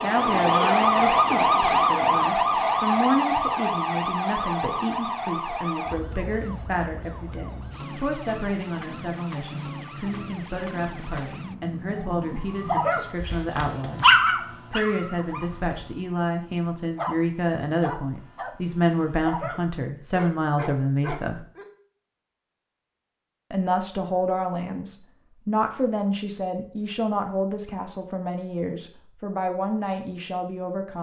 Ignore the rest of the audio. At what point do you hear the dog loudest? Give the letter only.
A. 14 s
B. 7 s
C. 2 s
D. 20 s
A.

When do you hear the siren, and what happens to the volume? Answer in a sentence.
You can hear the siren from 0.0 to 13.2 s, getting quieter.